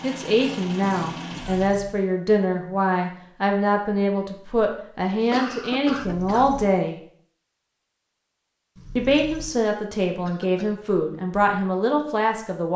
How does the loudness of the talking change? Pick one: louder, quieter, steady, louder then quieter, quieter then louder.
steady.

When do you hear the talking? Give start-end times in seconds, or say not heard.
0.0-7.0, 8.9-12.7.